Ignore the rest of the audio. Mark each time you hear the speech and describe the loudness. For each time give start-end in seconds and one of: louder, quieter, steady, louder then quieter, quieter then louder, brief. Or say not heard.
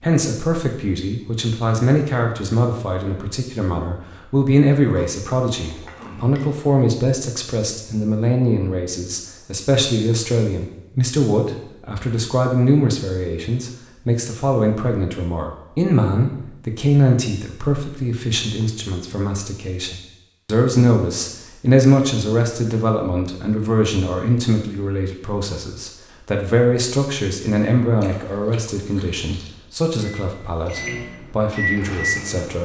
0.0-32.6 steady.